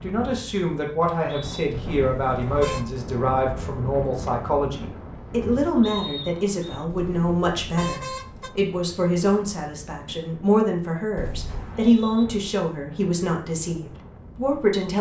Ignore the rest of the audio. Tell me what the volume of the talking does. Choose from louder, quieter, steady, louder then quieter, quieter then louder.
steady.